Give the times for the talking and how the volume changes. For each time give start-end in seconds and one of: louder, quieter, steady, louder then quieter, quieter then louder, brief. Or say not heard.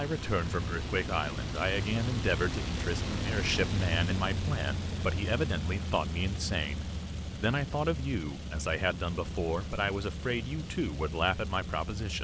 0.0-12.2 steady.